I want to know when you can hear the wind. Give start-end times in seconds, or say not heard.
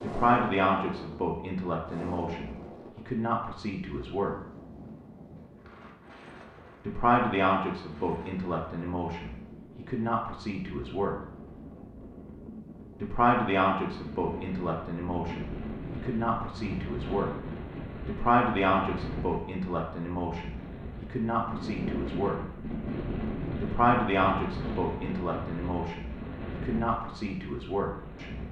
0.0-28.4.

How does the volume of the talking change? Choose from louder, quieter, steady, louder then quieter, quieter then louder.
steady.